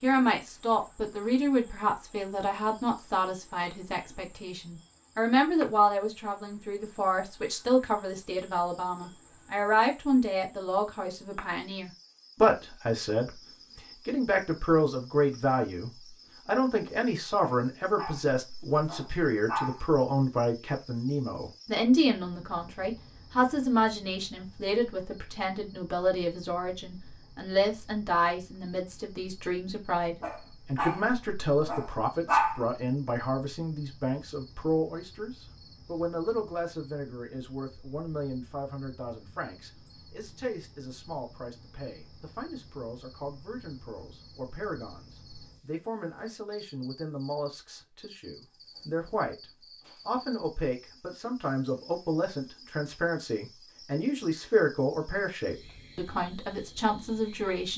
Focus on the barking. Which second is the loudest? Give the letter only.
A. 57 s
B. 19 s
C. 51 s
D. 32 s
D.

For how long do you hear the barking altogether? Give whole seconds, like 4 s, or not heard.
5 s.